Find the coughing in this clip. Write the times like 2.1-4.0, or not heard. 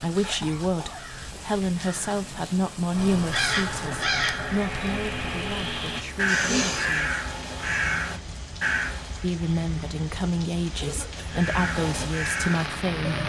0.2-1.1, 6.2-6.9, 10.8-11.4.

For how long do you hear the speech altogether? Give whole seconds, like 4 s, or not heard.
11 s.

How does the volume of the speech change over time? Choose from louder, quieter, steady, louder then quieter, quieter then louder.
quieter then louder.